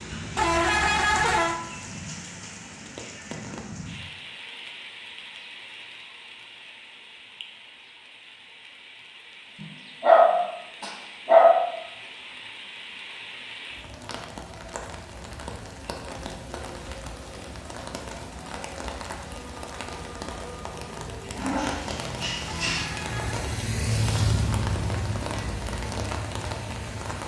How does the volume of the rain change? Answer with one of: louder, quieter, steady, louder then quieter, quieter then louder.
quieter then louder.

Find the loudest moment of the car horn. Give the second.
1 s.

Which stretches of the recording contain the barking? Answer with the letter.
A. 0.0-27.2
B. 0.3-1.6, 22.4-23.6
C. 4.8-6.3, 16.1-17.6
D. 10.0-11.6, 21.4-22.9
D.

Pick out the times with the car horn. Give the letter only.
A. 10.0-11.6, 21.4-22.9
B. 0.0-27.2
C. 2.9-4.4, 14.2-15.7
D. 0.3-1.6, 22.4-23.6
D.